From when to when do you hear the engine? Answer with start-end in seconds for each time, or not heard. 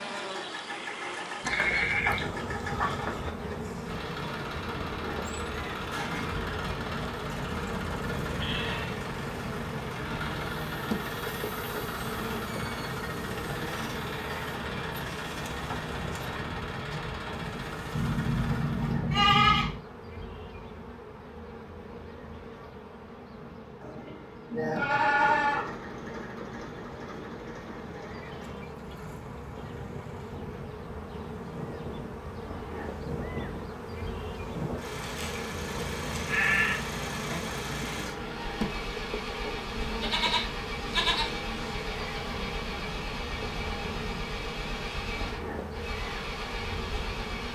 0.0-19.0, 24.9-47.4.